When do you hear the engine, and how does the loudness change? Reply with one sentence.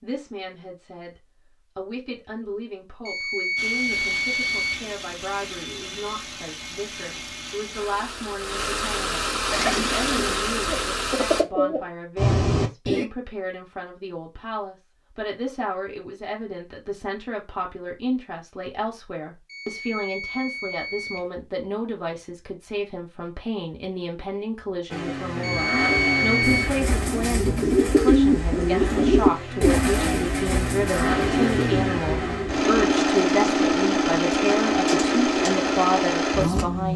The engine can be heard from 3.5 to 11.4 s, getting louder; and from 24.9 to 36.9 s, getting quieter then louder.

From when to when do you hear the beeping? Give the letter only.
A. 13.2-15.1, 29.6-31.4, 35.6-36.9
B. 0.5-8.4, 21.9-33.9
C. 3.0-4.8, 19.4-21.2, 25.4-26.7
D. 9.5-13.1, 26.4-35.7
C.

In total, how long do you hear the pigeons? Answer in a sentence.
The pigeons can be heard for 13 seconds in total.